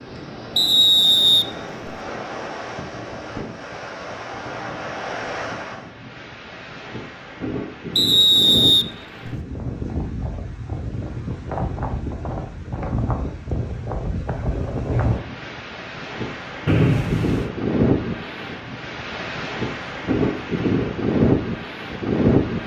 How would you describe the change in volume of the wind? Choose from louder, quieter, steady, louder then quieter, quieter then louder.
louder.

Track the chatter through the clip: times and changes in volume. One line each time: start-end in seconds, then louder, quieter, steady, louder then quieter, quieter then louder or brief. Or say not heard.
not heard.